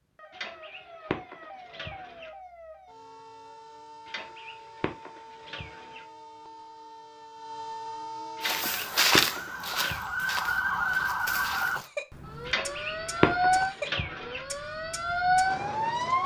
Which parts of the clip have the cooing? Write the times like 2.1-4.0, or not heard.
0.3-2.3, 4.0-6.0, 8.3-10.0, 12.4-14.4.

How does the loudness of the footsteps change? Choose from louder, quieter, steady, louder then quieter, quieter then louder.
quieter.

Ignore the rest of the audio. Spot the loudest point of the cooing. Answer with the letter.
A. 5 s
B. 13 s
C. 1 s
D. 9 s
B.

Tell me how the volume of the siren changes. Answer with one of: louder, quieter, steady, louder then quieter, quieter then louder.
louder.